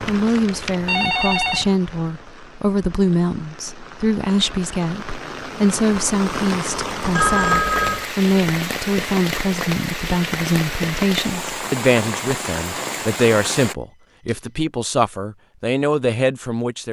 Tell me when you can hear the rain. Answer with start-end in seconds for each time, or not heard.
0.0-13.8.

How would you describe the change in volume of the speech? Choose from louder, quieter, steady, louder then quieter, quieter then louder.
steady.